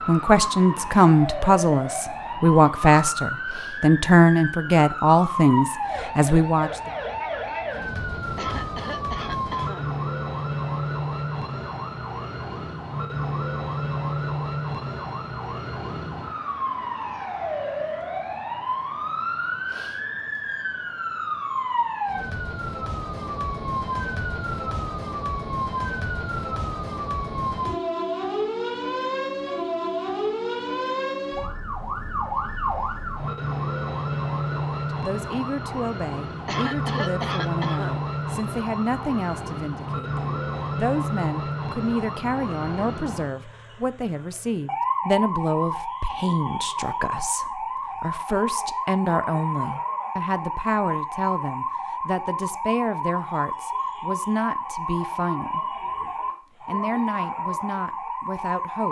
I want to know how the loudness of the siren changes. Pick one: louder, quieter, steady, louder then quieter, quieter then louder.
steady.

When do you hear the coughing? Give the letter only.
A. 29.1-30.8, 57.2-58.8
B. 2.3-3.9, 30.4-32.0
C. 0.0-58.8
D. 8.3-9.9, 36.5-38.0
D.